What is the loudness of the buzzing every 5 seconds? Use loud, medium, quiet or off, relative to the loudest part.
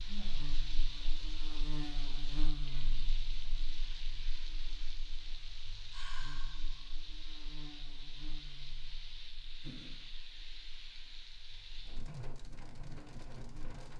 loud, medium, quiet.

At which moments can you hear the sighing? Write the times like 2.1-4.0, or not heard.
0.0-1.1, 5.9-6.8, 9.6-10.1.